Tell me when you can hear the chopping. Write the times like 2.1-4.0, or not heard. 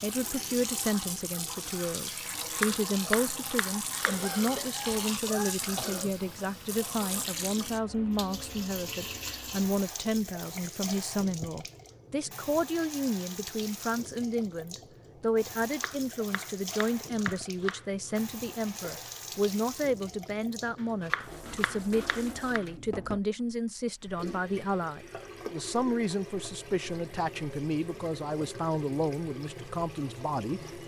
2.5-4.5, 15.8-18.2, 20.8-22.6.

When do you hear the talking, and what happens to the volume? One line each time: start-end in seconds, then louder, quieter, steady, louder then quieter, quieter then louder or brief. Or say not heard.
0.0-30.7 steady.